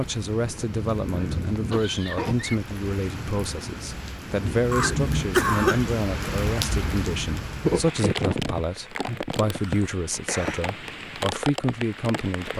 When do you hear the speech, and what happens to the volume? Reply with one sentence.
The speech can be heard from 0.0 to 12.5 s, at a steady volume.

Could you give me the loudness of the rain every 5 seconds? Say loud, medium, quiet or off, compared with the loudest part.
medium, loud, medium.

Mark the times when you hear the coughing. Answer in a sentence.
The coughing can be heard from 0.6 to 2.5 s, from 4.7 to 5.8 s and from 9.4 to 10.7 s.